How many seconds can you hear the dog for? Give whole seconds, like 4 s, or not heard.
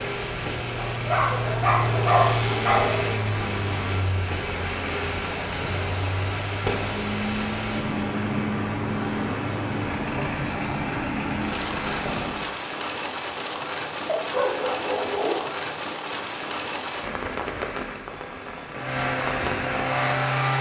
4 s.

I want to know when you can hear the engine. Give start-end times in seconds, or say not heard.
0.0-12.6, 18.8-20.5.